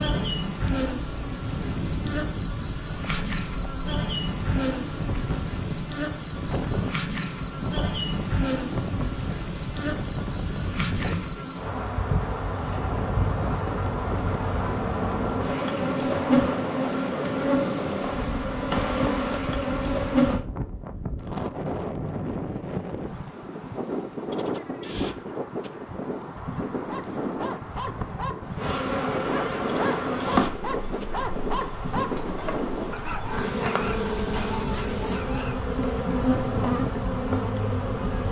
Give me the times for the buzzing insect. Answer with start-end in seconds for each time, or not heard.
0.0-20.4, 28.6-38.2.